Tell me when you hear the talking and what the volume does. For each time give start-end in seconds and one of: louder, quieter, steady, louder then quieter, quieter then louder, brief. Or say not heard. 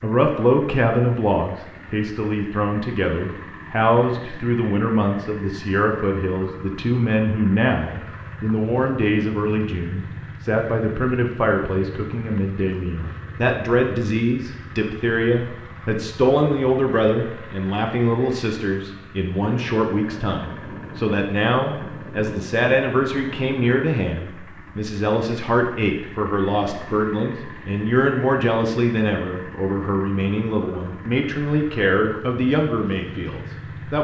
0.0-33.9 steady.